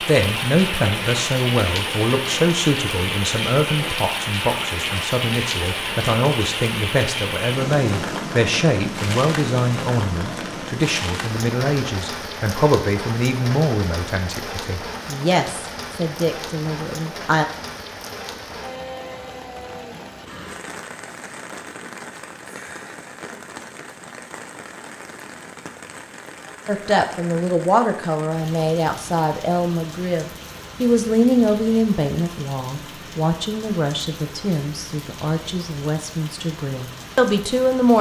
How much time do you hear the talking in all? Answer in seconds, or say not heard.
29 s.